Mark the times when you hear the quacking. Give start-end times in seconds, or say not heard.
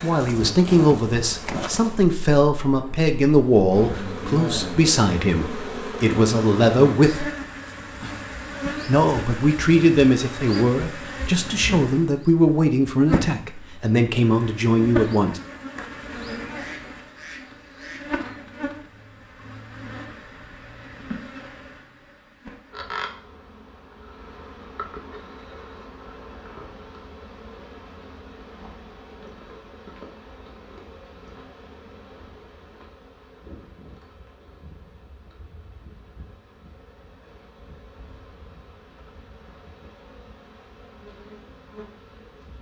16.4-18.2.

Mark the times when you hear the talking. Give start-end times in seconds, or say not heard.
0.0-7.3, 8.8-15.4.